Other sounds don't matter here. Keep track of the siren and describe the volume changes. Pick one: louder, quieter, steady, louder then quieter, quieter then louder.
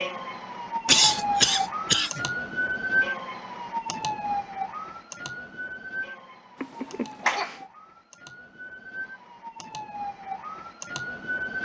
quieter then louder.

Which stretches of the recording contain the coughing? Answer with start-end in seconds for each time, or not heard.
0.8-2.2, 6.6-7.7.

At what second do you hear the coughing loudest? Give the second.
1 s.